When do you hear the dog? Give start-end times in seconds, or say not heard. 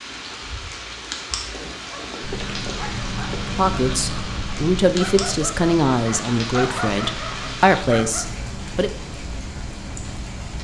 1.4-8.3.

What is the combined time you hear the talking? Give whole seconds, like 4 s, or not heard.
5 s.